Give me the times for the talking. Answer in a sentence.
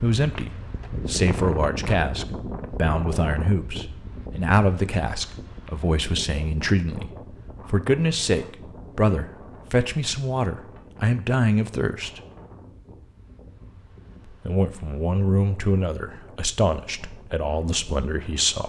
You can hear the talking from 0.0 to 12.2 s and from 14.2 to 18.6 s.